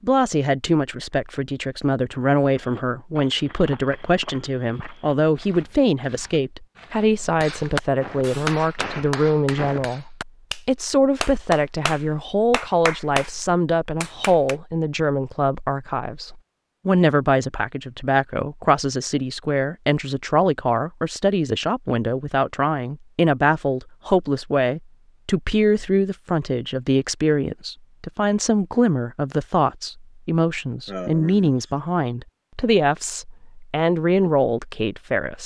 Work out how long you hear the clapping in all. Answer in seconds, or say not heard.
7 s.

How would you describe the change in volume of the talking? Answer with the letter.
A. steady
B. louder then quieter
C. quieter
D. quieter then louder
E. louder
A.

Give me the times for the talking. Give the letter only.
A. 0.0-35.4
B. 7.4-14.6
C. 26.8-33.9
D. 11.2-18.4
A.